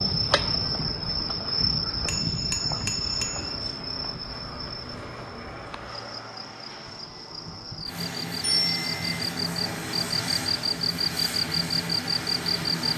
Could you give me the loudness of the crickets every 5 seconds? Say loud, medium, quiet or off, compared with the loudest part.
loud, medium, loud.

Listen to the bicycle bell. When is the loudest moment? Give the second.
9 s.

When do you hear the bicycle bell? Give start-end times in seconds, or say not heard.
2.0-3.5, 8.4-9.2.